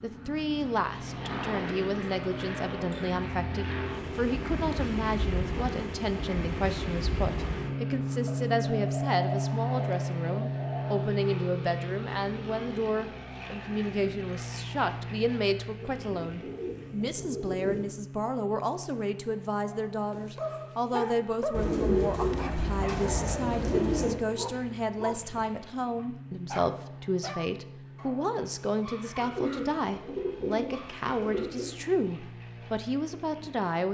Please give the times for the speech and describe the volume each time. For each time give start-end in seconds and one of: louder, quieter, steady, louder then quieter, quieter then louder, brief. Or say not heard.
0.0-33.8 steady.